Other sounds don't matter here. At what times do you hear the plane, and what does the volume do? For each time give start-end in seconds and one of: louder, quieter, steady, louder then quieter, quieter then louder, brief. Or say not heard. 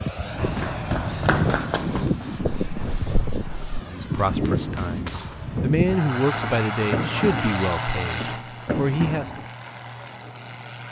0.0-10.8 quieter.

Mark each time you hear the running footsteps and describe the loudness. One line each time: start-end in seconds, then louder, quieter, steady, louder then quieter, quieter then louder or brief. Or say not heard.
0.3-9.4 quieter then louder.